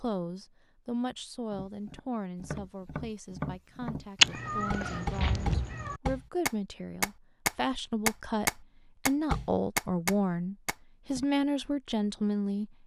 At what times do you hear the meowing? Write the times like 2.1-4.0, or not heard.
4.2-6.0.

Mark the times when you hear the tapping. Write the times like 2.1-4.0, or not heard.
1.5-11.2.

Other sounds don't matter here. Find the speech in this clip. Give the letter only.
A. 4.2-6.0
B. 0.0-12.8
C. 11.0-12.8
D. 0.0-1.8
B.